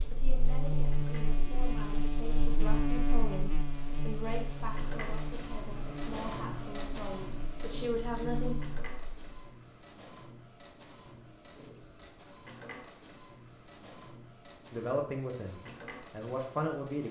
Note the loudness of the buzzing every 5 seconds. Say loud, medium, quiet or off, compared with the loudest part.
loud, medium, off, off.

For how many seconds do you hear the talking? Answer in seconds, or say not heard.
11 s.